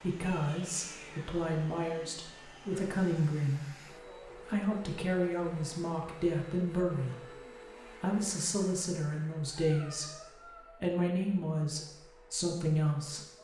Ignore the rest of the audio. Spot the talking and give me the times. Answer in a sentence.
You can hear the talking from 0.0 to 3.8 s, from 4.5 to 7.2 s and from 8.0 to 13.4 s.